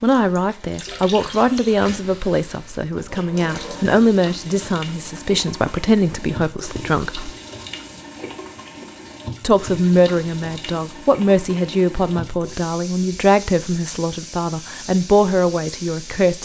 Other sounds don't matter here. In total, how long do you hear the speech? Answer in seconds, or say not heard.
14 s.